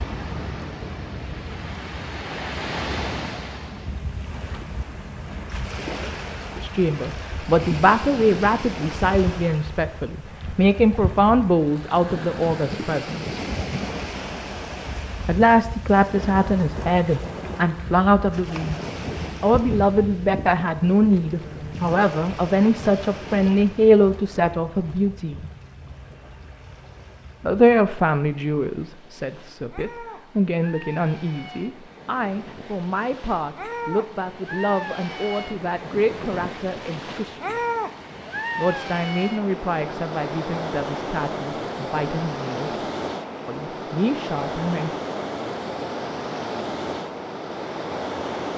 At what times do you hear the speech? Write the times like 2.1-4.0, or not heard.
6.6-13.3, 15.2-18.8, 19.4-25.4, 27.4-37.6, 38.5-42.7, 43.5-44.9.